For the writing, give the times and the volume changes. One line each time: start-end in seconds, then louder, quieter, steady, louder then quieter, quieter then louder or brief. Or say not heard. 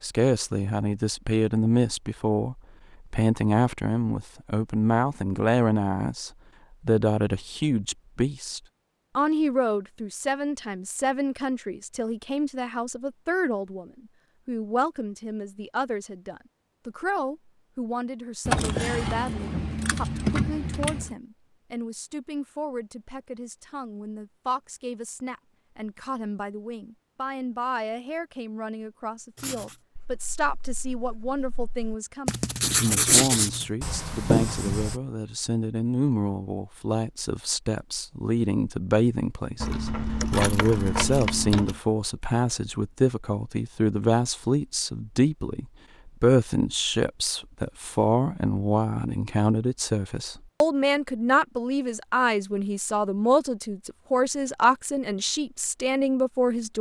29.4-35.0 louder.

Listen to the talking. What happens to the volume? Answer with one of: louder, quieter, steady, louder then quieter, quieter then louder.
quieter then louder.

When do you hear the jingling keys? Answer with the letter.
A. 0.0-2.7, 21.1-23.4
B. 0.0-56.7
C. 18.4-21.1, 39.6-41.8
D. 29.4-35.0
C.